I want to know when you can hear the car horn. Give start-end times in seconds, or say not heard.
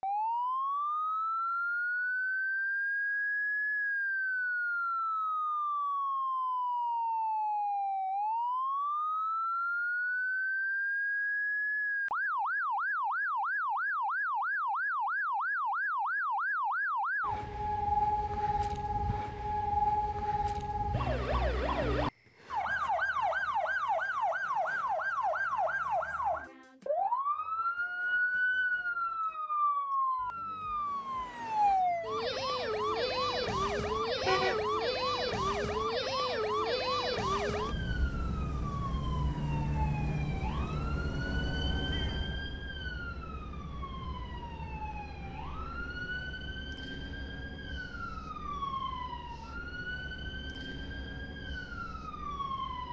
34.2-34.6.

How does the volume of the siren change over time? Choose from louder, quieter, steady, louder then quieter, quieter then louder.
quieter.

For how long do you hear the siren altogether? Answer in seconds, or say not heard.
53 s.